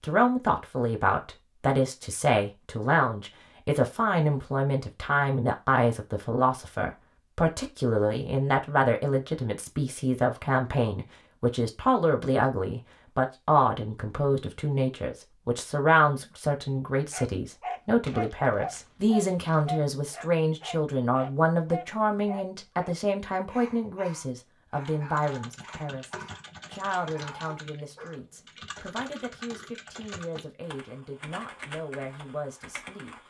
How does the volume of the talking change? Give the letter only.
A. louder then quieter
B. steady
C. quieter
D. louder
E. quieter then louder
C.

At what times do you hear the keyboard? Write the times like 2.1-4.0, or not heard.
24.9-33.2.